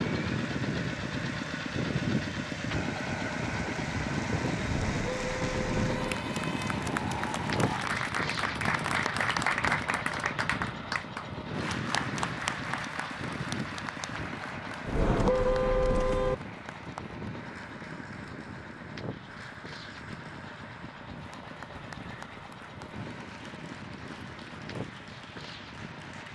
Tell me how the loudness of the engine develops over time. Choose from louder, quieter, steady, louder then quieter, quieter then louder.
quieter.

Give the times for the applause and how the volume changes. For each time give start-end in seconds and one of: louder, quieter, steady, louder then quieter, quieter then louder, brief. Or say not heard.
0.0-26.3 louder then quieter.